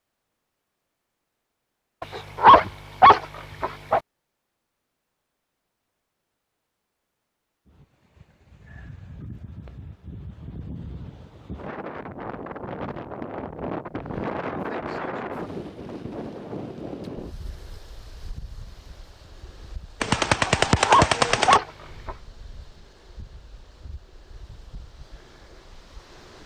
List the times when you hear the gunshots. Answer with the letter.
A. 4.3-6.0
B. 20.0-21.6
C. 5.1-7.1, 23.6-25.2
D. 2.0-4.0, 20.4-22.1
B.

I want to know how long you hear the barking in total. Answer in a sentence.
The barking can be heard for 4 seconds in total.